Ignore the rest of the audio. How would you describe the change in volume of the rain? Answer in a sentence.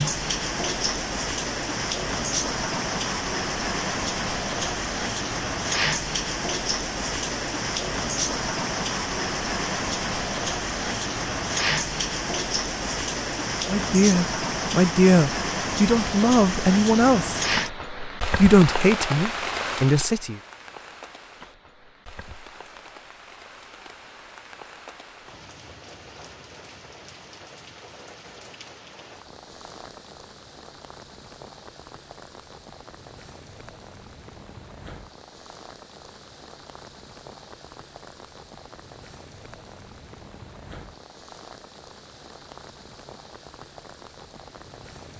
The loudness of the rain goes down.